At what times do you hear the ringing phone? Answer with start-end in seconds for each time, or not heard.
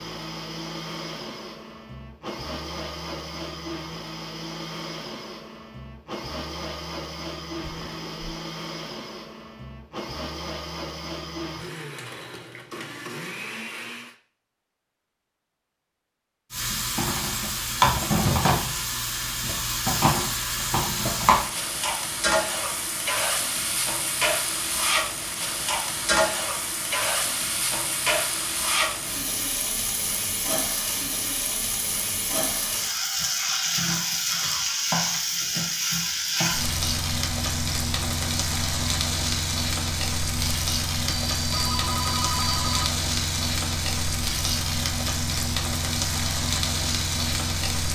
41.0-42.9.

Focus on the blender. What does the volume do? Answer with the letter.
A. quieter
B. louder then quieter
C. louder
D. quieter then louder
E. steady
E.